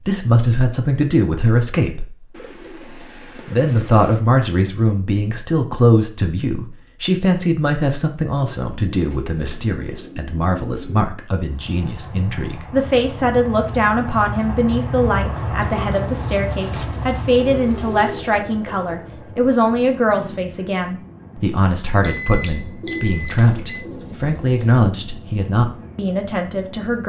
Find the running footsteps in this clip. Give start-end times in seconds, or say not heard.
not heard.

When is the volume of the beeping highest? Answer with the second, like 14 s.
22 s.